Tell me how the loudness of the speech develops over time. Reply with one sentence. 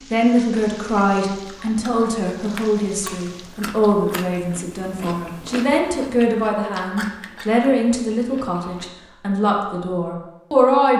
The loudness of the speech stays about the same.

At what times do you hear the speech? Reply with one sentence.
You can hear the speech from 0.1 to 10.9 s.